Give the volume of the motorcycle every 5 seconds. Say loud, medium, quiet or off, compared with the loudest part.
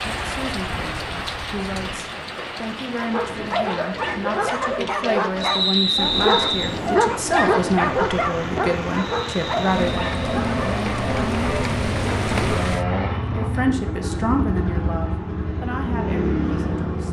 quiet, medium, loud, loud.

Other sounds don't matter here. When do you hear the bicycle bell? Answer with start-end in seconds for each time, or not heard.
not heard.